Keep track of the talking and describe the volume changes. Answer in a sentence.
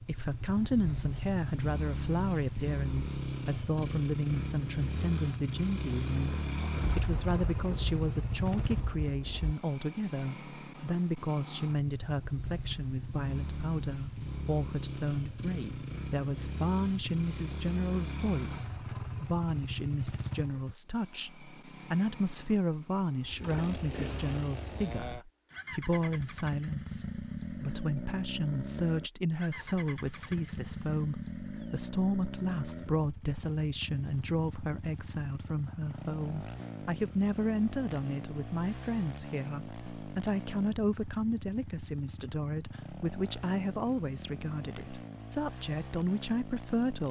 The volume of the talking stays about the same.